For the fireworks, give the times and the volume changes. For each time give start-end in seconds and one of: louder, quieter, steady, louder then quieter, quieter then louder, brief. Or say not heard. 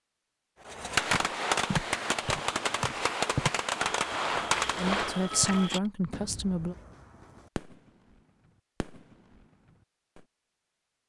0.7-10.2 quieter.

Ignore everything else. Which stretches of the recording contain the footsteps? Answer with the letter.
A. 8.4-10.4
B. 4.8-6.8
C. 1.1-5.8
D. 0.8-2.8
C.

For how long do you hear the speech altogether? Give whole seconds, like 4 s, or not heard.
2 s.